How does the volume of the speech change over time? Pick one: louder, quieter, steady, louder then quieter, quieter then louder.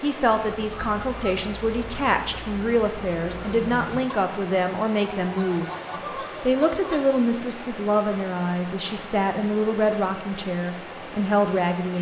steady.